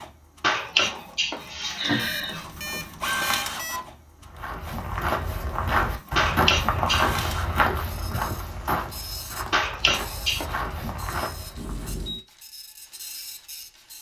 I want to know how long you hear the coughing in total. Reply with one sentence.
The coughing can be heard for 4 seconds in total.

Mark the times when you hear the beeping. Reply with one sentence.
You can hear the beeping from 1.9 to 3.8 s and from 11.6 to 12.2 s.